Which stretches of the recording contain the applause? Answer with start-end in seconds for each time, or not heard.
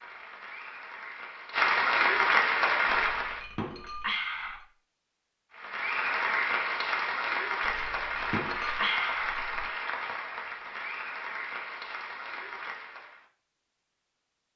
0.0-3.4, 5.5-13.2.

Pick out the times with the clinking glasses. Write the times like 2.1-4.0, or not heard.
2.9-4.7, 7.6-9.7.